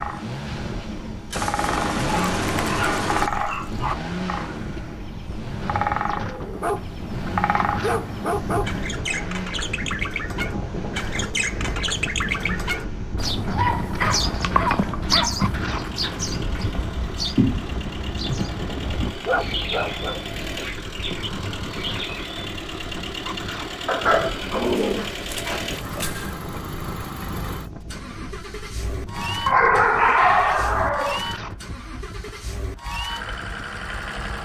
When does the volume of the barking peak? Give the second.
30 s.